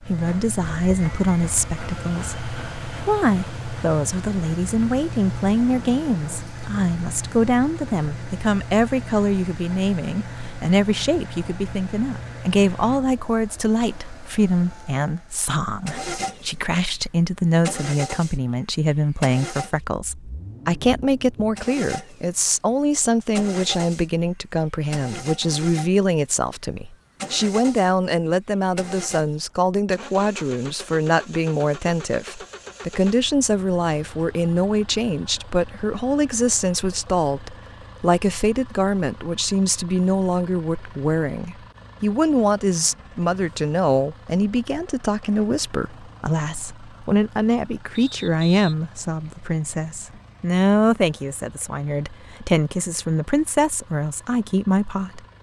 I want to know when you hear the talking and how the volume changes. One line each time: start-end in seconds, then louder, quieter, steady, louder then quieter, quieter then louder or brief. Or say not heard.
0.1-55.2 steady.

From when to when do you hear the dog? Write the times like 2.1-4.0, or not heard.
not heard.